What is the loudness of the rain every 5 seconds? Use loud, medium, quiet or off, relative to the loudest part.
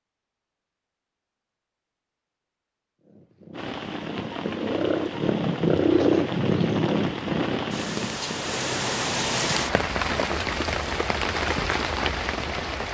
medium, loud, loud.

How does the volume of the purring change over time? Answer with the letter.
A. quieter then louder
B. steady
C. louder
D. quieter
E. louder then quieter
E.